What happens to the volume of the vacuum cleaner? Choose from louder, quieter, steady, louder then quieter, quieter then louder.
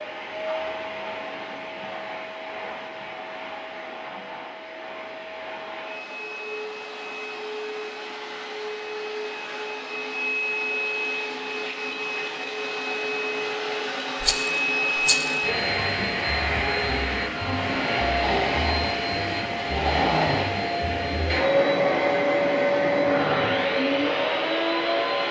louder.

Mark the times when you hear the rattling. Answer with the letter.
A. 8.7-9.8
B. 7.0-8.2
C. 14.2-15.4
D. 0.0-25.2
C.